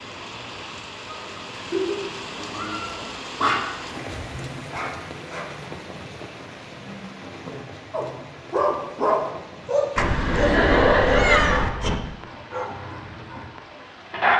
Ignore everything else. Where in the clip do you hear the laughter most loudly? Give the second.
11 s.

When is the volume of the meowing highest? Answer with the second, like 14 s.
11 s.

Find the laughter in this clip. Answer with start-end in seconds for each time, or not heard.
1.1-2.0, 10.2-11.6.